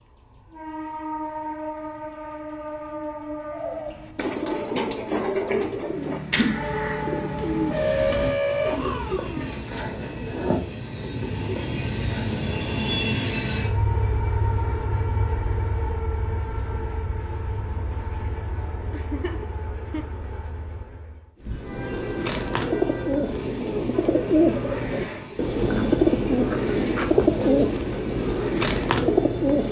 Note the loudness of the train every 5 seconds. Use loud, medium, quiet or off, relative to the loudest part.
medium, loud, loud, medium, medium, medium.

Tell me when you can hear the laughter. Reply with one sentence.
You can hear the laughter from 18.9 to 20.1 s.